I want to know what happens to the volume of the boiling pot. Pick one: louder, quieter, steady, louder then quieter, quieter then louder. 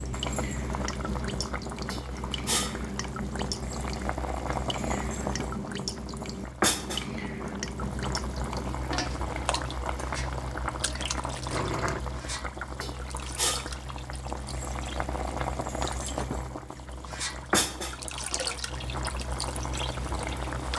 steady.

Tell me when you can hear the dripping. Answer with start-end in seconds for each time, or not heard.
0.0-20.7.